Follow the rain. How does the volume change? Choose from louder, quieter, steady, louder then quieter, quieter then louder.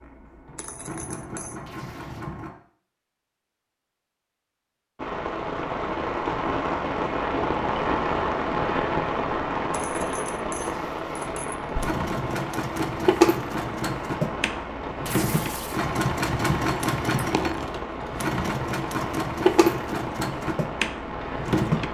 quieter.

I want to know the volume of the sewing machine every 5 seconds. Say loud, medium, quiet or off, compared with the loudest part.
quiet, off, loud, loud, loud.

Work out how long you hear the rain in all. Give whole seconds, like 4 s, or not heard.
17 s.